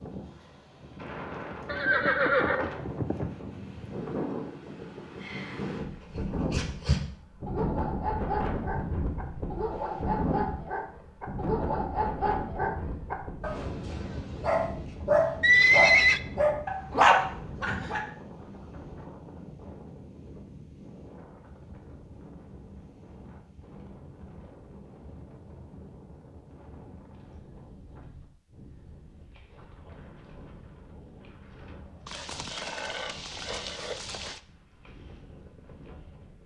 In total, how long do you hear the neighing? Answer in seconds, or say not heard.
5 s.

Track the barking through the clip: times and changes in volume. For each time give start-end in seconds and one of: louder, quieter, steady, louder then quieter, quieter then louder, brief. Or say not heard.
6.0-18.0 louder.